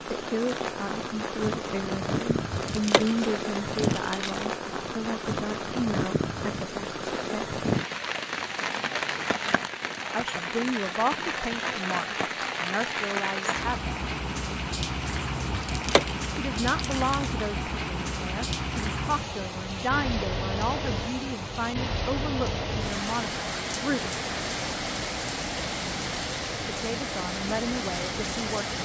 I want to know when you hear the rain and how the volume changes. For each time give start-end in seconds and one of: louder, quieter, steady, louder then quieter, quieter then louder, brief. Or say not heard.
0.0-28.8 steady.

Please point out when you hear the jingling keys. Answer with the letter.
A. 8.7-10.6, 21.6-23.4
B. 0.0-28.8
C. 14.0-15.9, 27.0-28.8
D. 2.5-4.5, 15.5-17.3
D.